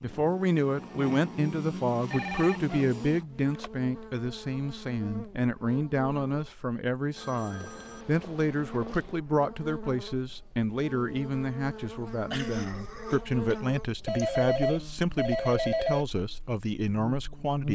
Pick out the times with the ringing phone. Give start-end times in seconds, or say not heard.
2.1-3.7, 7.2-9.2, 14.1-16.1.